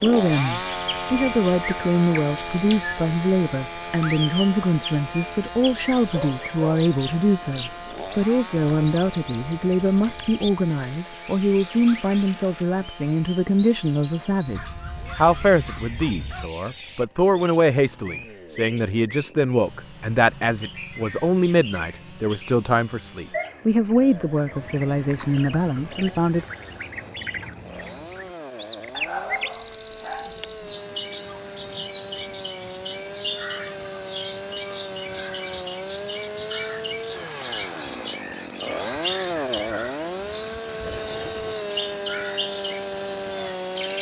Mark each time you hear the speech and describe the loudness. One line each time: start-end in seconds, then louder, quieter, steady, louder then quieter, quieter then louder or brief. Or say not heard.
0.0-26.4 steady.